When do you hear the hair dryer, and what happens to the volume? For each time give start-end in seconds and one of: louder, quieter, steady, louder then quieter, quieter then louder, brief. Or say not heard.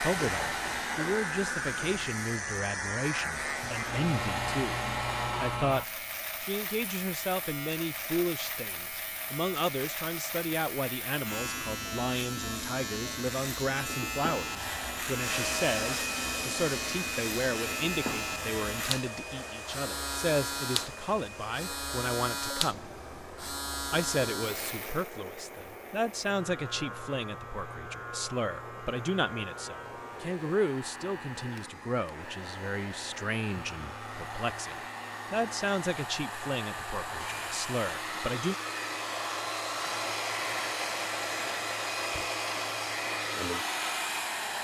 0.0-5.5 quieter then louder
14.4-44.5 quieter then louder.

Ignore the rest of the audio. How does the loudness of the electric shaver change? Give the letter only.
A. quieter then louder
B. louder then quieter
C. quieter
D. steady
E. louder
C.